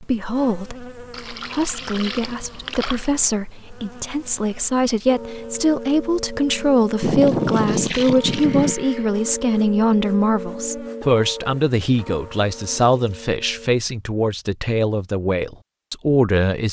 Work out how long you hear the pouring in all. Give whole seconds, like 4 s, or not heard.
4 s.